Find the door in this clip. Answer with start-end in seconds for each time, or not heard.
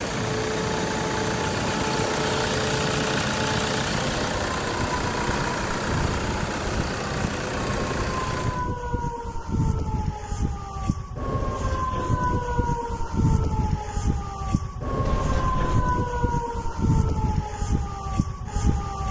15.0-15.9.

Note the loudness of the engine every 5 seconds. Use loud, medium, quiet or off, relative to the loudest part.
loud, loud, off, off.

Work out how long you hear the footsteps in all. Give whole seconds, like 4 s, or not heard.
not heard.